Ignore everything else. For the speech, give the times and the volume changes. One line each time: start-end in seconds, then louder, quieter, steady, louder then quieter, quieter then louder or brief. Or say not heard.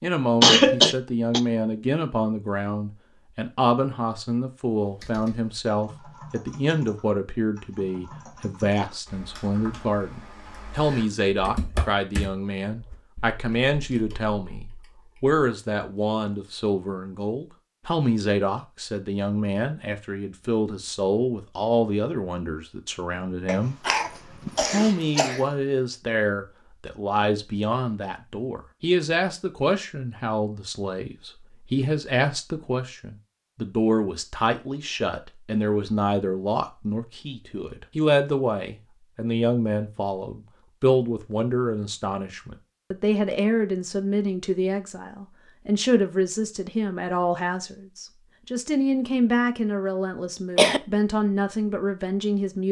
0.0-23.8 steady
24.6-52.6 steady.